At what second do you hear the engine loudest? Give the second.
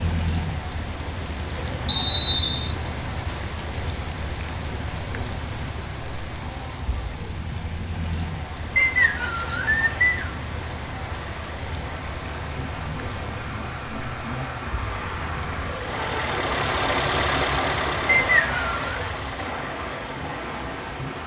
17 s.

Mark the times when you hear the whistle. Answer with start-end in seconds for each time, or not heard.
1.9-2.8, 8.8-10.3, 18.1-18.9.